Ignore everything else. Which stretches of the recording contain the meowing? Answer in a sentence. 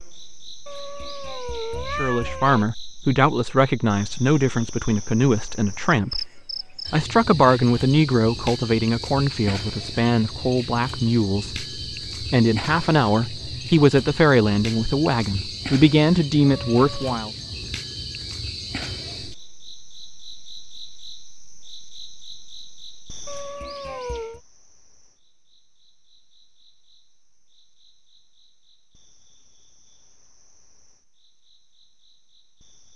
The meowing can be heard from 0.7 to 2.6 s, from 16.4 to 17.2 s and from 23.2 to 24.4 s.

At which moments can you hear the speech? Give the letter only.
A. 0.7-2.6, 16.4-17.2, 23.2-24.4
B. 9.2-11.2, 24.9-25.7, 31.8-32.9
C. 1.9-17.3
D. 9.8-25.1
C.